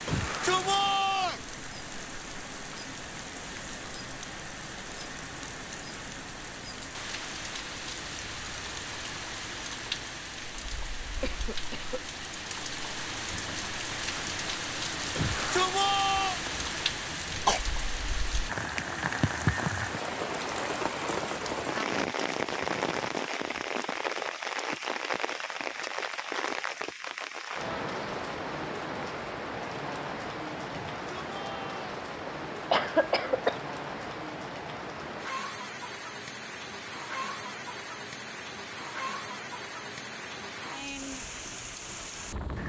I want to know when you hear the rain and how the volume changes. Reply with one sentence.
The rain can be heard from 0.0 to 42.6 s, getting louder then quieter.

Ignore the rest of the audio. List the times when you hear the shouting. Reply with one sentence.
You can hear the shouting from 0.1 to 1.4 s, from 15.2 to 16.4 s and from 30.9 to 31.9 s.